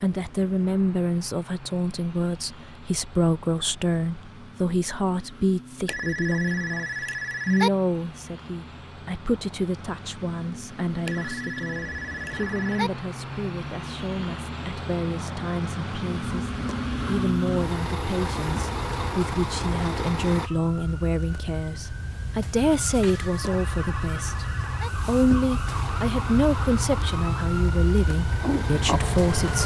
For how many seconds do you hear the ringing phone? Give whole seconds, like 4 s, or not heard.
5 s.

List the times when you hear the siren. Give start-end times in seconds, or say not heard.
16.2-29.6.